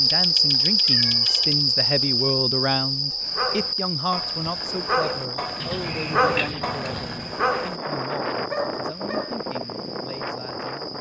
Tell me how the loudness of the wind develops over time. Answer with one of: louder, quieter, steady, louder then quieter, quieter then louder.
louder.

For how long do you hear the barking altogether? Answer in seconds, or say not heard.
6 s.